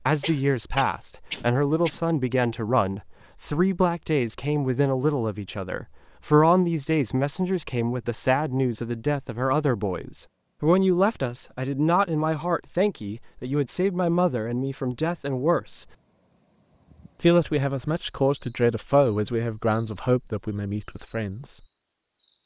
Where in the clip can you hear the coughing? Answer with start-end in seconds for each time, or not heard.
0.2-2.0.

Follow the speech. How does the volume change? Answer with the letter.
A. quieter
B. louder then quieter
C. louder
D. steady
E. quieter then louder
D.